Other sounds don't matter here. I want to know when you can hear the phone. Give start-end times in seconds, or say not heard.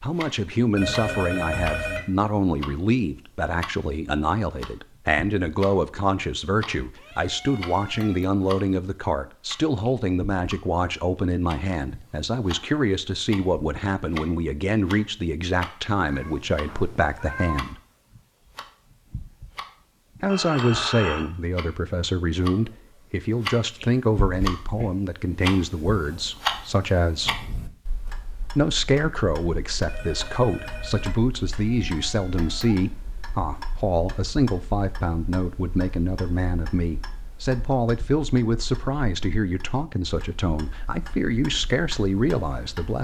0.8-2.0, 20.2-21.2, 29.9-31.1.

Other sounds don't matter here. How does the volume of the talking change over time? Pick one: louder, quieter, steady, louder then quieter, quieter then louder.
steady.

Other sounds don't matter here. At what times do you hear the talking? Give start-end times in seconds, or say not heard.
0.0-17.8, 20.2-27.4, 28.6-43.0.